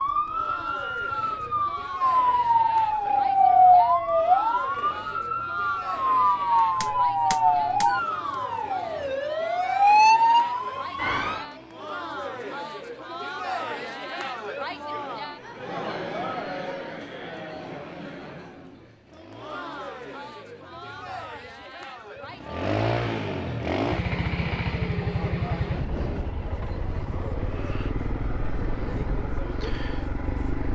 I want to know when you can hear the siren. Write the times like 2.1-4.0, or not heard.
0.0-11.4.